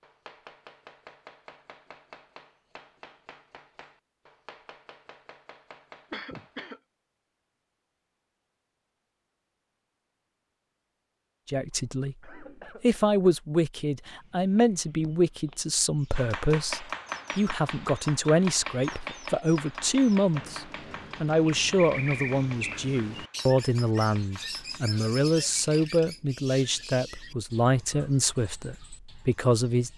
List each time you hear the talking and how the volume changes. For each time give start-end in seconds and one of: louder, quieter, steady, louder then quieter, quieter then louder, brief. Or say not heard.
11.4-29.9 steady.